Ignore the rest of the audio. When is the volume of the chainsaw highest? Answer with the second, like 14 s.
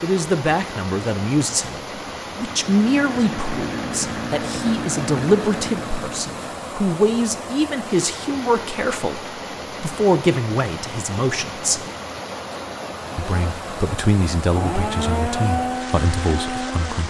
15 s.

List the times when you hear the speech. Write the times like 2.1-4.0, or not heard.
0.0-11.8, 13.2-17.0.